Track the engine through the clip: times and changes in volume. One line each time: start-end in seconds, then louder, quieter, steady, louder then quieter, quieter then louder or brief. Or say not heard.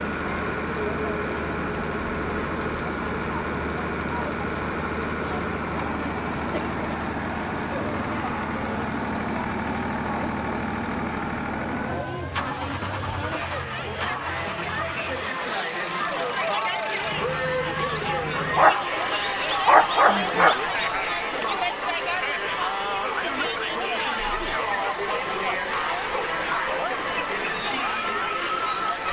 0.0-29.0 quieter.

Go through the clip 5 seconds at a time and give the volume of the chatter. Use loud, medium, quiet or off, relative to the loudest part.
medium, medium, medium, loud, loud, loud.